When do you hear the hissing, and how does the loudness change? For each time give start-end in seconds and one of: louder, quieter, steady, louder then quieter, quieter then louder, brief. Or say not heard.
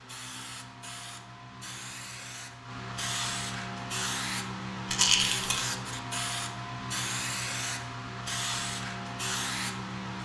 0.0-10.2 louder.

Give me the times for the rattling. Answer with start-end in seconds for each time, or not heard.
4.8-5.7.